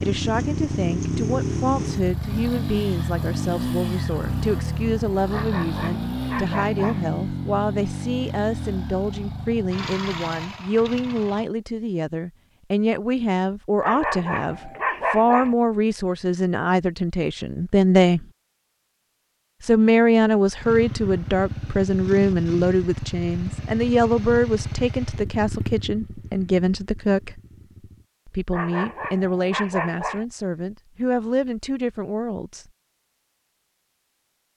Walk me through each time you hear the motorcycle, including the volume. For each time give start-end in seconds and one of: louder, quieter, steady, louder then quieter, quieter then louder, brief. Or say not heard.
0.0-11.5 quieter
20.6-28.1 quieter.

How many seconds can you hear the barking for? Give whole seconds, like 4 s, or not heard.
5 s.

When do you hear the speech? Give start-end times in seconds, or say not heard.
0.0-18.2, 19.6-27.4, 28.2-32.6.